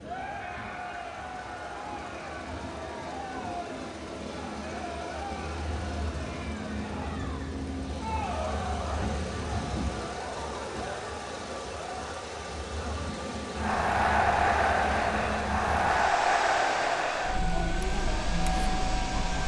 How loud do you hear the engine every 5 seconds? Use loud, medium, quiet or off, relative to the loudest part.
medium, loud, loud, loud.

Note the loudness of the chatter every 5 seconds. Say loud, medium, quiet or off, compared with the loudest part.
medium, medium, loud, loud.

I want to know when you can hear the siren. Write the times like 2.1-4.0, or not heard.
not heard.